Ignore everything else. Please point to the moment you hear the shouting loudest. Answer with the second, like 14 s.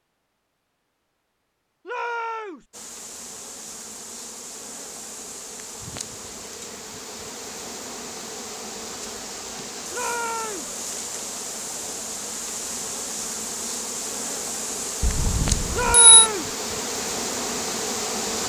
16 s.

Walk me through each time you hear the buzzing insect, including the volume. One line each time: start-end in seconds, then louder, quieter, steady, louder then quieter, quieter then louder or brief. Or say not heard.
2.7-18.4 louder.